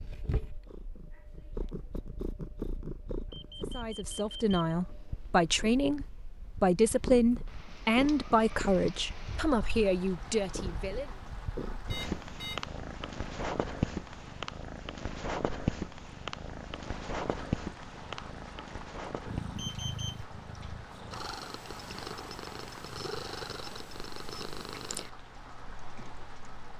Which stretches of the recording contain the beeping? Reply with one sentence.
You can hear the beeping from 3.3 to 4.5 s, from 11.9 to 12.7 s and from 19.6 to 20.2 s.